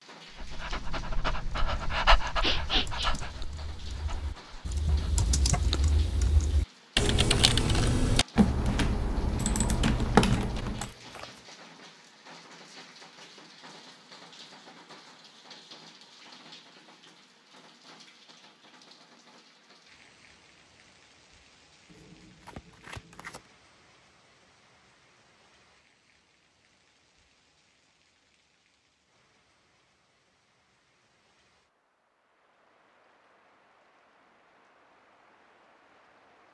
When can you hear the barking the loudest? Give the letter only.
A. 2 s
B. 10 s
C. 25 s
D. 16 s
A.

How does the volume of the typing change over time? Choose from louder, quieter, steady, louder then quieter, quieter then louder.
louder.